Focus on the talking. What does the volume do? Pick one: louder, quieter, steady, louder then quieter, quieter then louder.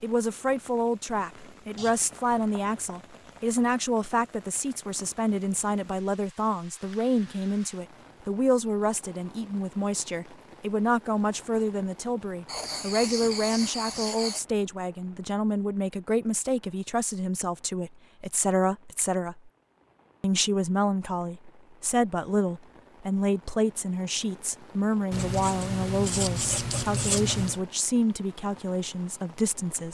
steady.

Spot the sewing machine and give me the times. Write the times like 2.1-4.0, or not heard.
not heard.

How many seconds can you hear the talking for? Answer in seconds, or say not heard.
29 s.